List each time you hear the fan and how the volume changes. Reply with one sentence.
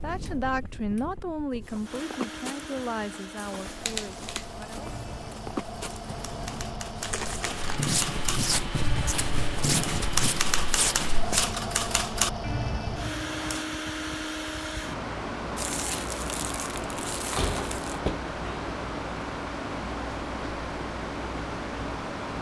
You can hear the fan from 0.0 to 22.3 s, getting louder.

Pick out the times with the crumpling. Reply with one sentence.
The crumpling can be heard from 7.0 to 8.0 s and from 15.6 to 18.0 s.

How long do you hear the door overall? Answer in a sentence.
The door can be heard for 2 seconds in total.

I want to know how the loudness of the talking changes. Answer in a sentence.
The volume of the talking goes down.